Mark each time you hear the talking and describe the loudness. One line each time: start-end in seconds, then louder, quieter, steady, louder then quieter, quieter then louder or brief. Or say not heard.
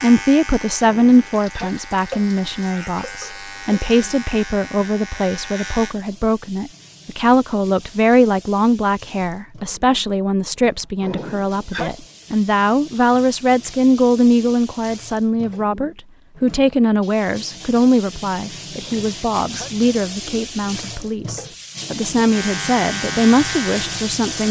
0.0-24.4 steady.